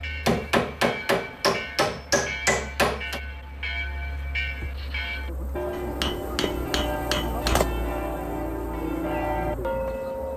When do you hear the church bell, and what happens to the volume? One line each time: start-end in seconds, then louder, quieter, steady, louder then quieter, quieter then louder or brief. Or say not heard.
0.0-10.3 louder.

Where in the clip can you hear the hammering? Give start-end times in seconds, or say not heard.
0.2-3.2, 5.7-7.7.